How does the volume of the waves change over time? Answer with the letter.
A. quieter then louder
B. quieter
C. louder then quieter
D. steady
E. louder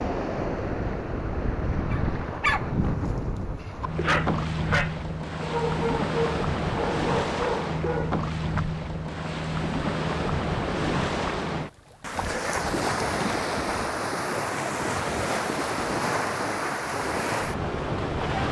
D.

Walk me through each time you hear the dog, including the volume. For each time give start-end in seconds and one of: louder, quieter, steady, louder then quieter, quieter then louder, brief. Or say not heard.
1.9-8.2 steady.